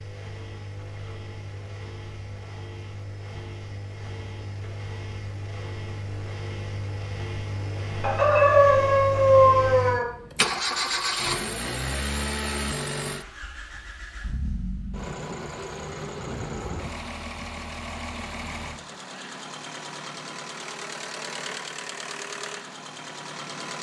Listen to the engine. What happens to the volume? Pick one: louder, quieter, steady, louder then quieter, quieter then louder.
louder then quieter.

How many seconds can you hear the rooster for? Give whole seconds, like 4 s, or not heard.
2 s.